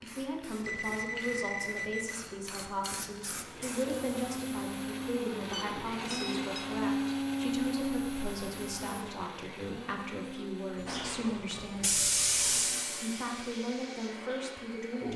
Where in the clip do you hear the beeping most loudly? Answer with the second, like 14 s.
1 s.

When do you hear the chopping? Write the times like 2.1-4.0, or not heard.
not heard.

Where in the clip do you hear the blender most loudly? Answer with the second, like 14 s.
7 s.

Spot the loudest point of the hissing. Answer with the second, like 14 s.
12 s.